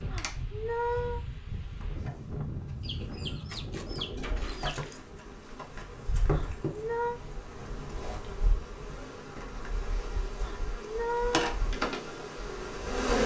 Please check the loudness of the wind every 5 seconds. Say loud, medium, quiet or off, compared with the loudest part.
loud, medium, off.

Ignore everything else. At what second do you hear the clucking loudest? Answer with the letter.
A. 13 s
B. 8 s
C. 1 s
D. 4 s
D.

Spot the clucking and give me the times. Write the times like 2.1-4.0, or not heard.
2.8-5.0.